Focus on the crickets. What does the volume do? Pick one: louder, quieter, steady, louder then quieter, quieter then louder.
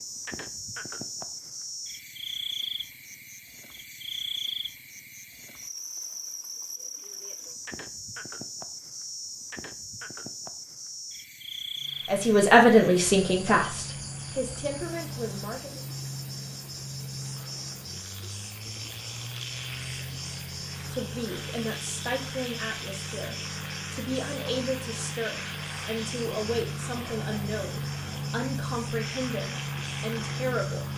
quieter.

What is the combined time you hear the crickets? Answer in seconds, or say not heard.
31 s.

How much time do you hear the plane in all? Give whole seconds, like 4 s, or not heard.
19 s.